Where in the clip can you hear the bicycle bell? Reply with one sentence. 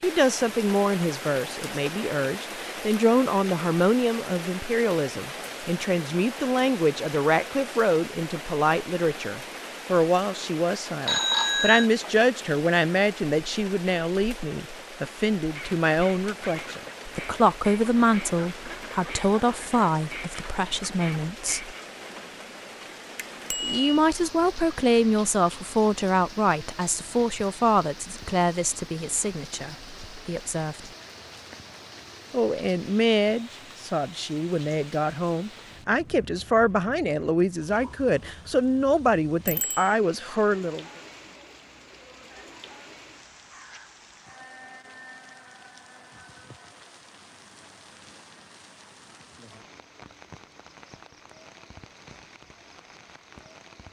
You can hear the bicycle bell from 11.1 to 11.9 s, from 23.1 to 23.9 s and from 39.5 to 40.0 s.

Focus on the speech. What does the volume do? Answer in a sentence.
The loudness of the speech stays about the same.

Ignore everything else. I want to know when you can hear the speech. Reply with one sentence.
The speech can be heard from 0.0 to 21.8 s, from 23.6 to 30.9 s and from 32.3 to 40.9 s.